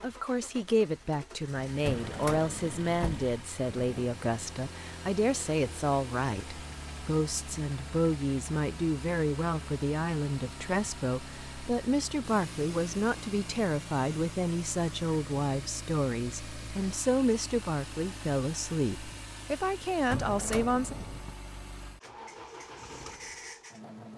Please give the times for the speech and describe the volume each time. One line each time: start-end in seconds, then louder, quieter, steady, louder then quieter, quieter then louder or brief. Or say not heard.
0.0-20.9 steady.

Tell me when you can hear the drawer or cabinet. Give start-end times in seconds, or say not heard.
1.8-4.1, 20.1-21.4.